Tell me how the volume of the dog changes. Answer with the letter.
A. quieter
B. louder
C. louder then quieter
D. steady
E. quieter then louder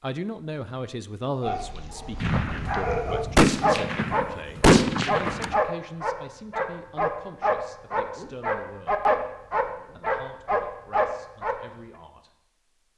B.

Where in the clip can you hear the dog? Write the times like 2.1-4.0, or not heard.
1.4-11.6.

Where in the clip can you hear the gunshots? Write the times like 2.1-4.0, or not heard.
2.2-5.5.